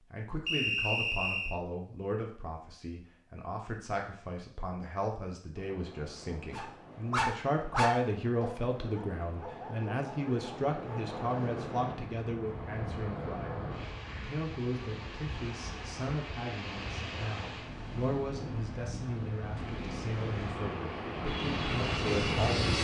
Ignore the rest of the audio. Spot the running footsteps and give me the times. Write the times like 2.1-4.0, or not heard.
not heard.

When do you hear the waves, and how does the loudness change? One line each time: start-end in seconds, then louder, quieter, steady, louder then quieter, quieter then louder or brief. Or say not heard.
5.5-22.5 louder.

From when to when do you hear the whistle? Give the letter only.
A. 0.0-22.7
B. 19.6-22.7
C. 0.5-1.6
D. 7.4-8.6
C.